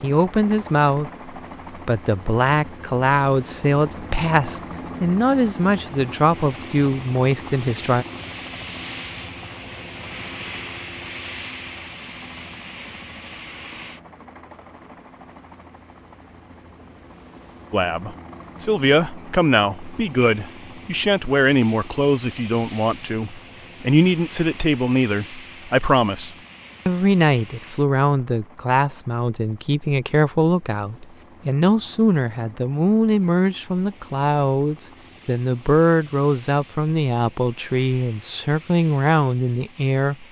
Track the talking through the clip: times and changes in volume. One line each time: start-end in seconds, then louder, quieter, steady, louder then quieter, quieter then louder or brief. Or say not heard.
0.0-8.1 steady
17.7-40.2 steady.